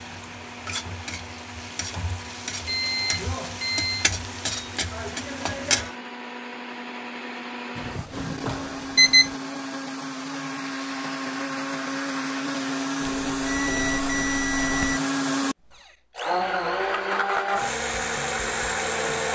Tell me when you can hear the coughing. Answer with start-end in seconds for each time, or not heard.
not heard.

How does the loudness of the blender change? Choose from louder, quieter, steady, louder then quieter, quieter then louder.
louder.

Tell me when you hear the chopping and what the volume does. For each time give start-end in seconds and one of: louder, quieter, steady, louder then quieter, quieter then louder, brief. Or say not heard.
not heard.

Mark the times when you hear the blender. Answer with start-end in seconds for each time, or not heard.
0.0-19.3.